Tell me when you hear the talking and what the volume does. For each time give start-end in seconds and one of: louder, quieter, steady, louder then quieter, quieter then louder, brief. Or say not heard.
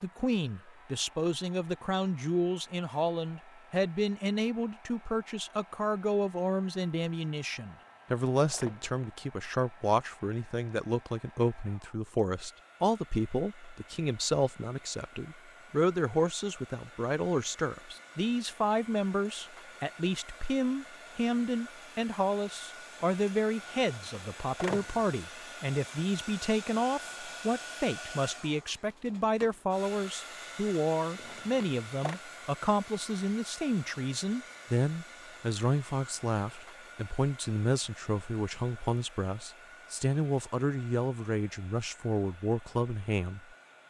0.0-43.5 steady.